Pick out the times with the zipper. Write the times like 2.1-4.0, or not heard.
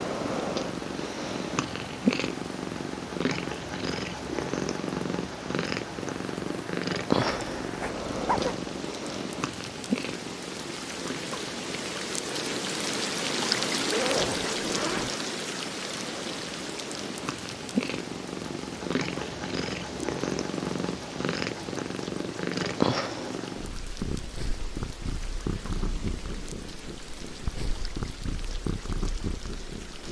7.2-8.6, 13.8-15.1, 25.4-26.6.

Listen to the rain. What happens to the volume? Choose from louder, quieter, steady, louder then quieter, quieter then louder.
louder then quieter.